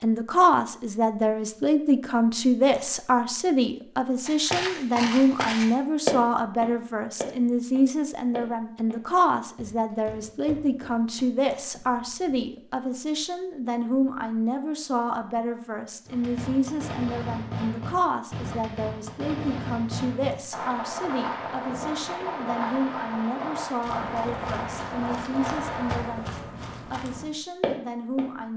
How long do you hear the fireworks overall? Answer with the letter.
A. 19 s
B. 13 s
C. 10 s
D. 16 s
C.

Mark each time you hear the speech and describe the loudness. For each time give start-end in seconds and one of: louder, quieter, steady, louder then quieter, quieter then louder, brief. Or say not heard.
0.0-28.5 quieter.